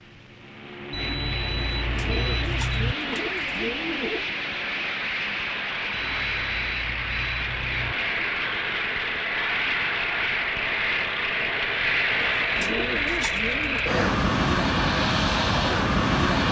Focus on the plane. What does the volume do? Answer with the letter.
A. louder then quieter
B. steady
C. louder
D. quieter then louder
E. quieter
C.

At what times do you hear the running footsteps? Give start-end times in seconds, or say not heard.
not heard.